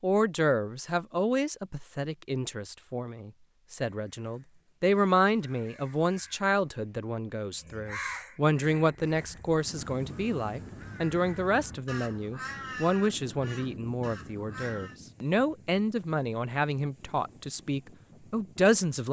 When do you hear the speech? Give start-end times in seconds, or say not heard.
0.0-19.0.